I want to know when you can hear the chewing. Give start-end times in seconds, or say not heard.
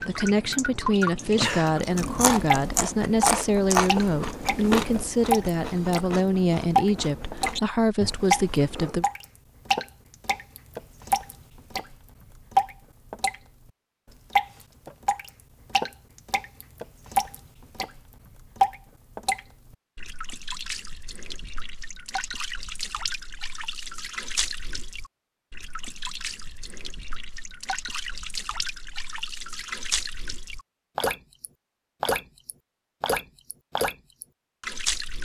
1.6-9.1.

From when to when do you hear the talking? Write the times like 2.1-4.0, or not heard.
0.1-9.1.